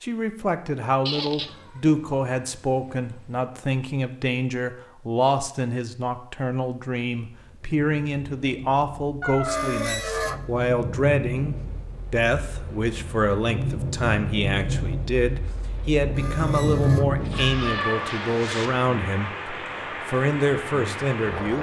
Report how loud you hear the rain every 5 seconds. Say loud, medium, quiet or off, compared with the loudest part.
off, quiet, loud, loud, loud.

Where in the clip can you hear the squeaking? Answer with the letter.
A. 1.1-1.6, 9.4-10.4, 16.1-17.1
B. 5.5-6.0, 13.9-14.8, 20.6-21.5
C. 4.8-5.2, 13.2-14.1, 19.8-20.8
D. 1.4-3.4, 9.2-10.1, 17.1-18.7
A.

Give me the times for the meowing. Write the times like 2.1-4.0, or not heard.
1.4-3.4, 9.2-10.1, 17.1-18.7.